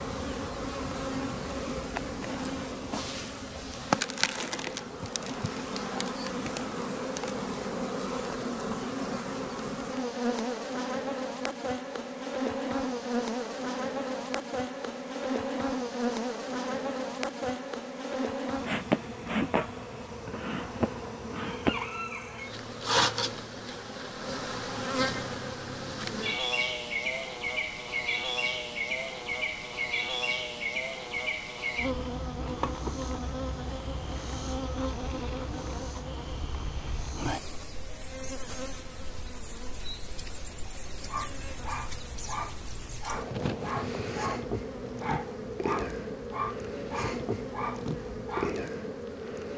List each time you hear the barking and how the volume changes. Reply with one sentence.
You can hear the barking from 41.0 to 48.7 s, at a steady volume.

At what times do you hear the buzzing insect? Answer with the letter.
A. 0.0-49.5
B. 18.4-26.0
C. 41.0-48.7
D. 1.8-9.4
A.